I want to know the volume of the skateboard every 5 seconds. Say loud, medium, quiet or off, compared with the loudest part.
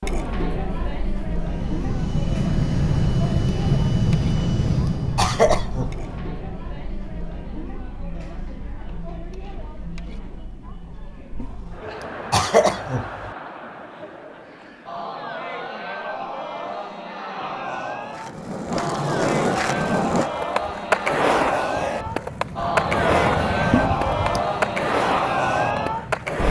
off, off, off, loud, loud, loud.